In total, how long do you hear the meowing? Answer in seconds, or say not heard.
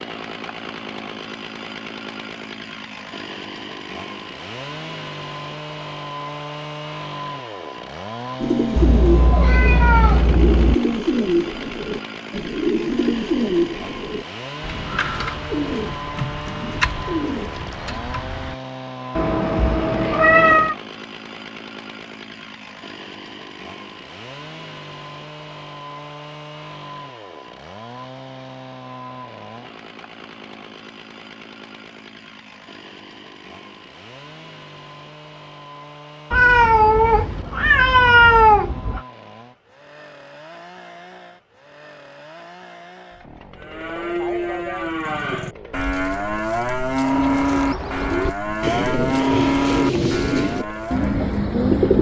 6 s.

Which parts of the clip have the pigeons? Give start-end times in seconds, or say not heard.
8.4-18.6, 47.1-51.9.